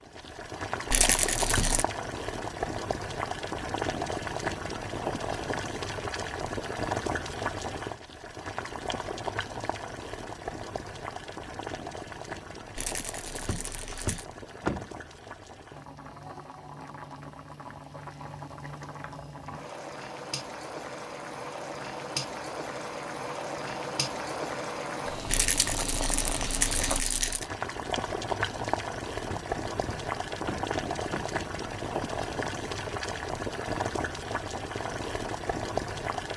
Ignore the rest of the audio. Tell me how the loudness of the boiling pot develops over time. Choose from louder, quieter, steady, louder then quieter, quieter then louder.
quieter then louder.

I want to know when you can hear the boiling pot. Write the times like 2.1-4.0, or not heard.
0.0-36.3.